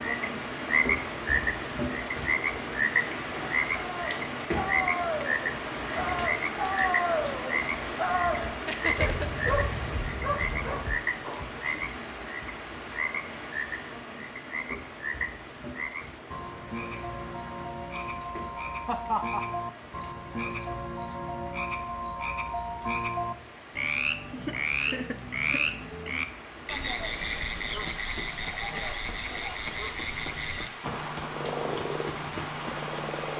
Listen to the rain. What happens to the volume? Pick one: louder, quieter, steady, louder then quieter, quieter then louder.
quieter then louder.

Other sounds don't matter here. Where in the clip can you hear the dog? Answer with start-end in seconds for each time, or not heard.
3.8-11.6.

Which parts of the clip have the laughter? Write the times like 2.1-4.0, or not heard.
8.7-9.3, 18.1-19.4, 24.3-25.6.